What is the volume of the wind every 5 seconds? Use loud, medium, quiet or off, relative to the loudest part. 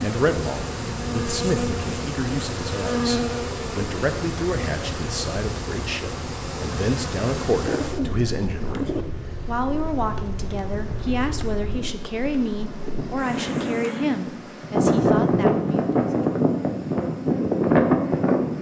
quiet, quiet, medium, loud.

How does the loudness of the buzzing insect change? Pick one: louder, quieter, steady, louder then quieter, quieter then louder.
quieter.